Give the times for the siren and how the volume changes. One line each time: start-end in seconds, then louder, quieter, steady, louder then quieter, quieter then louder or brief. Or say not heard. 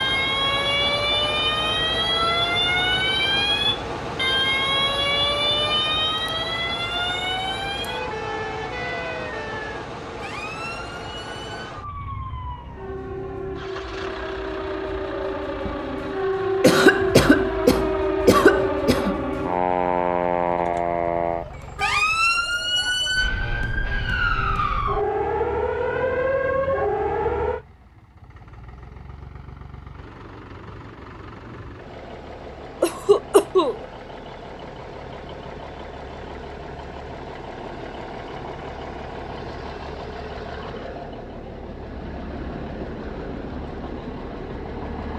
0.0-27.6 quieter then louder.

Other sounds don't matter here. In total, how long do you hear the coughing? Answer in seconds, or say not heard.
4 s.